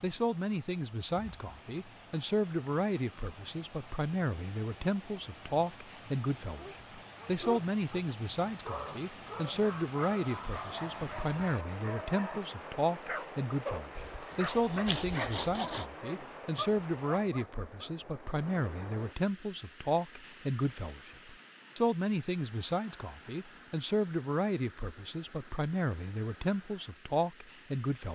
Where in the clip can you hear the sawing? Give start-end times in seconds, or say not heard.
13.9-15.9.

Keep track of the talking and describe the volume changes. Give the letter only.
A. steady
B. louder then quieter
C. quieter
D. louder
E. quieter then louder
A.